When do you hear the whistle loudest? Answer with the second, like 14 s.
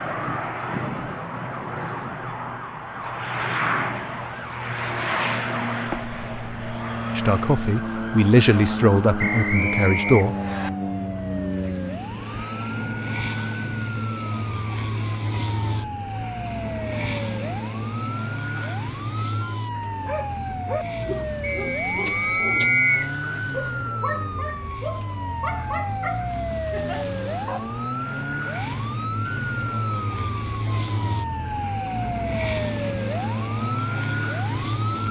23 s.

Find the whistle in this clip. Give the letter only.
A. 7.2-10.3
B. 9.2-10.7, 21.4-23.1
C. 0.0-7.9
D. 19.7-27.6
B.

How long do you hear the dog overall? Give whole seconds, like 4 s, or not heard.
8 s.